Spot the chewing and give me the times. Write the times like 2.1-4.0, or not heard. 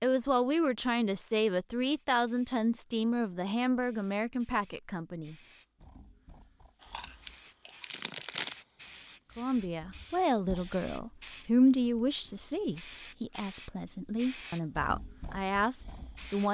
6.8-8.6.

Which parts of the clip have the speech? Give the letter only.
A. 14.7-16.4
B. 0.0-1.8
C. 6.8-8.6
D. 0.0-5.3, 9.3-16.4
D.